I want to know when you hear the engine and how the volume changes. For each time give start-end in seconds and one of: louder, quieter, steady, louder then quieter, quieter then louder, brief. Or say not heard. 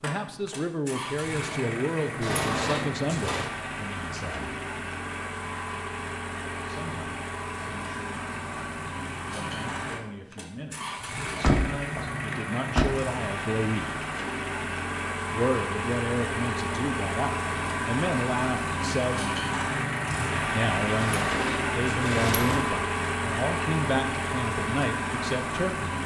0.0-26.0 louder.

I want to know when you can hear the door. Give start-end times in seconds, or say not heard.
2.2-3.5, 11.2-12.8, 21.0-22.8.